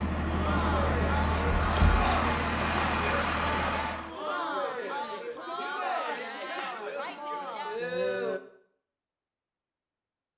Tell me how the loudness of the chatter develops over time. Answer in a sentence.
The volume of the chatter stays about the same.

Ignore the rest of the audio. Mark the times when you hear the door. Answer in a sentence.
The door can be heard from 1.4 to 2.3 s.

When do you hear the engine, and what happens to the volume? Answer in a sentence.
The engine can be heard from 0.0 to 4.2 s, at a steady volume.